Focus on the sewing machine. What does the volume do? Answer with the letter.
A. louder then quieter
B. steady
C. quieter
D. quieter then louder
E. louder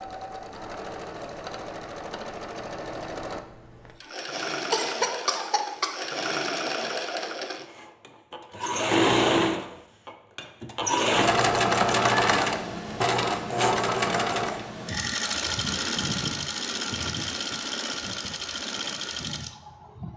A.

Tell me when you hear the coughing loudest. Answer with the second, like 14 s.
5 s.